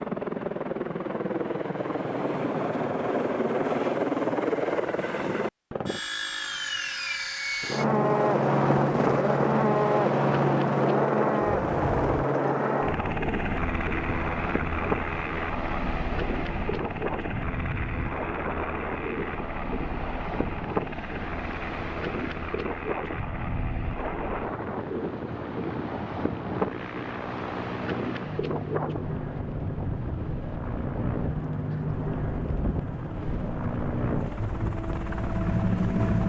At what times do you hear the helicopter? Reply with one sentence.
The helicopter can be heard from 0.0 to 36.2 s.